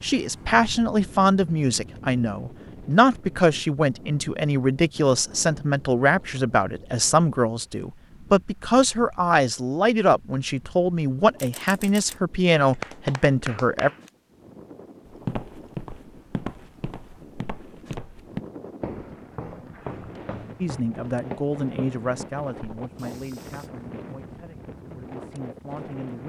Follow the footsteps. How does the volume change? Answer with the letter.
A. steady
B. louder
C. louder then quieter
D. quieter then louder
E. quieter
E.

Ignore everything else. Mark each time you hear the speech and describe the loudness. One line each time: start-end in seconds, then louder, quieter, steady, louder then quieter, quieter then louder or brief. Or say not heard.
0.0-13.9 steady
20.6-26.2 quieter then louder.